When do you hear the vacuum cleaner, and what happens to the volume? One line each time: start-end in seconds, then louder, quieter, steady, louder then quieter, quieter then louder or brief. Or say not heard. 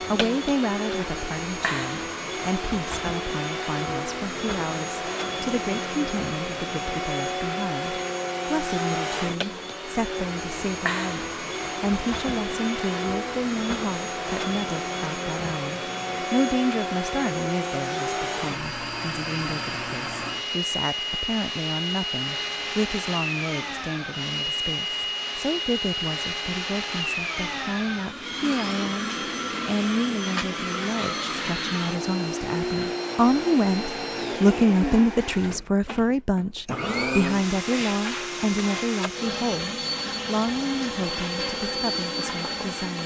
0.0-43.0 steady.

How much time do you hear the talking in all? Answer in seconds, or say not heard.
43 s.